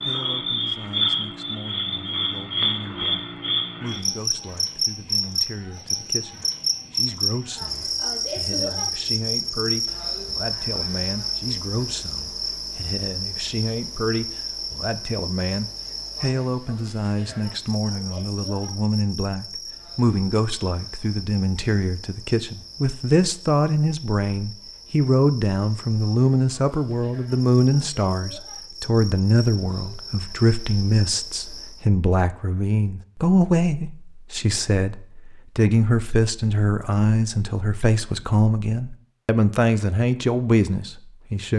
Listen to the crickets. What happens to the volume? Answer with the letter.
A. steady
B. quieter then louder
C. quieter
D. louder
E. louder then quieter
C.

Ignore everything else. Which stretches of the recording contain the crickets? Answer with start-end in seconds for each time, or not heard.
0.0-31.9.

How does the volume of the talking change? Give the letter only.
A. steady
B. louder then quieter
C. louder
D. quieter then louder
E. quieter
C.